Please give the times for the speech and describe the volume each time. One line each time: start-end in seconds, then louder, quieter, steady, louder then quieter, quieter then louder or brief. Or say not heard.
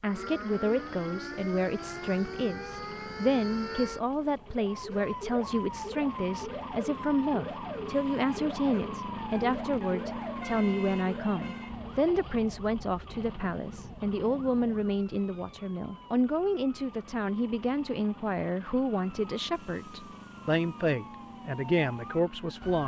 0.0-22.8 steady.